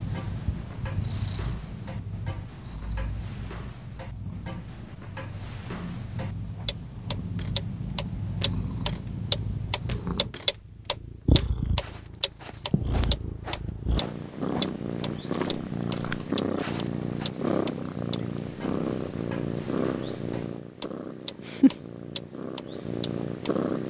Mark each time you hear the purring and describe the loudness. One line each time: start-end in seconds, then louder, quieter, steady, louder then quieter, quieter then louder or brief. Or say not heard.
0.0-23.8 louder.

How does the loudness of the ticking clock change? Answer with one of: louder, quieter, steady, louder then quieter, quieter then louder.
louder then quieter.